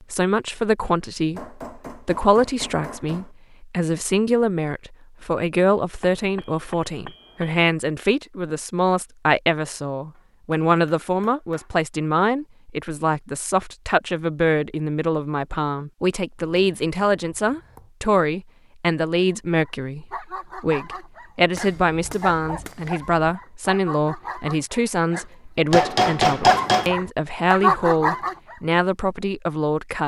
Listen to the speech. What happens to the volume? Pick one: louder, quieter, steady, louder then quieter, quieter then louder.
steady.